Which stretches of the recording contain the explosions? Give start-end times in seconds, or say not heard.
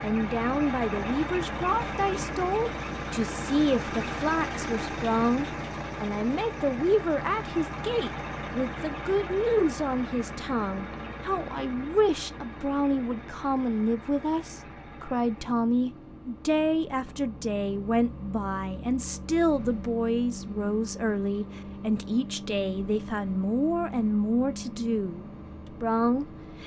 not heard.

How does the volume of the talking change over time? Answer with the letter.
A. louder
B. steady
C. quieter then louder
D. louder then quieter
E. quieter
B.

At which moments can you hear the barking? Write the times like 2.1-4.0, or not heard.
not heard.